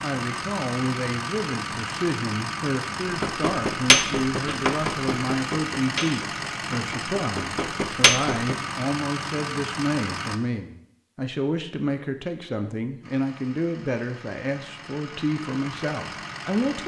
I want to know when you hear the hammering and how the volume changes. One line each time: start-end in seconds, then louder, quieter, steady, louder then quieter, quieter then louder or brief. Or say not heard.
3.2-8.6 quieter then louder.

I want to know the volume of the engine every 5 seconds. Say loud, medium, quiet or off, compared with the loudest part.
loud, loud, medium, medium.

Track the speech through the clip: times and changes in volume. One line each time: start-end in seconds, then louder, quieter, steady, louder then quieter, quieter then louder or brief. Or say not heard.
0.0-16.8 steady.